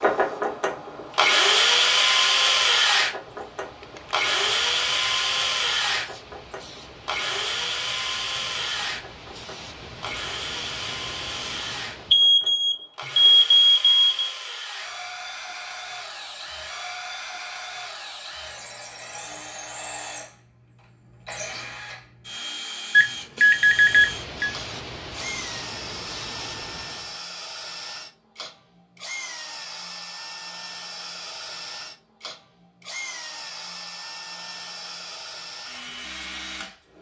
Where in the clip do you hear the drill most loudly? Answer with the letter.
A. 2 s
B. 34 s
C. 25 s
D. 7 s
A.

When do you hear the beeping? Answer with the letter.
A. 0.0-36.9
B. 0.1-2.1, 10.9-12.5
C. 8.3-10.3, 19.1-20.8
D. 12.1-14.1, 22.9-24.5
D.